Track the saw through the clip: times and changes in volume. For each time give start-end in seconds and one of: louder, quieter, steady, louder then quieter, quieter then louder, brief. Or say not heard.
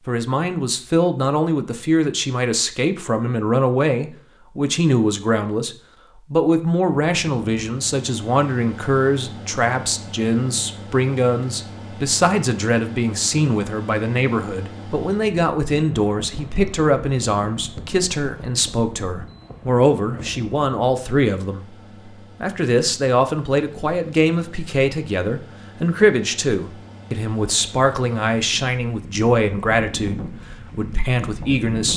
not heard.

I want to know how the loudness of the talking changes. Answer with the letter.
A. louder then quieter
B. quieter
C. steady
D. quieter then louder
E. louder
C.